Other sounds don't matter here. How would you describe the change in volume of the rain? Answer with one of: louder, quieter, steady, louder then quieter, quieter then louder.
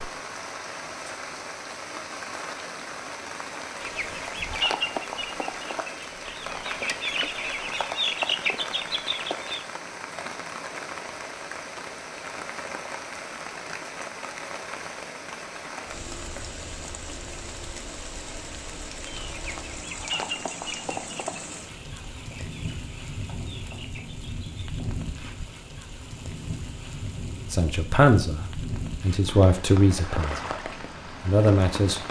steady.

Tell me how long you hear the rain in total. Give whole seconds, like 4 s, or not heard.
32 s.